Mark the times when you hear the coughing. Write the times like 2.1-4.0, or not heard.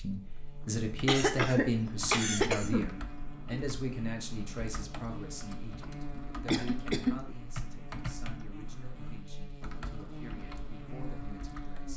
1.1-2.9, 6.5-7.2.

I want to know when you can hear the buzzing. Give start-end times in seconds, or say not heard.
0.0-11.9.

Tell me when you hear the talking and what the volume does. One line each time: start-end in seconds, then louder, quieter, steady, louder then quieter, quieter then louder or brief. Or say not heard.
0.0-11.9 quieter.